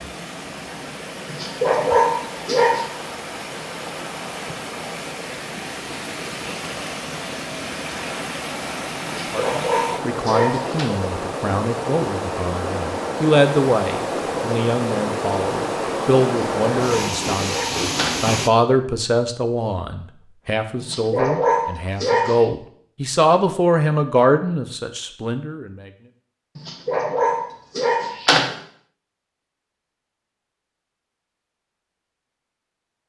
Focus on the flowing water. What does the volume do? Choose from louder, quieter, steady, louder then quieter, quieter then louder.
louder.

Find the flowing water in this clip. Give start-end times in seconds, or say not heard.
0.0-18.5.